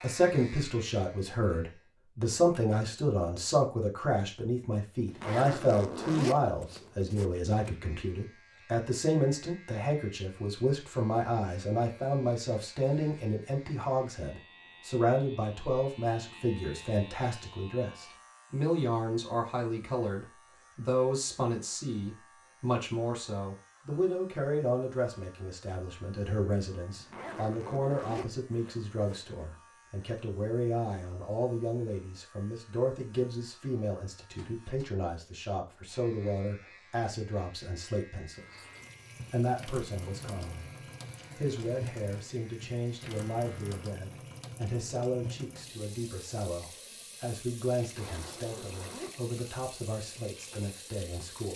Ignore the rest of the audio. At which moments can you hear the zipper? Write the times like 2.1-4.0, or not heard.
5.0-7.8, 26.9-29.6, 47.8-49.4.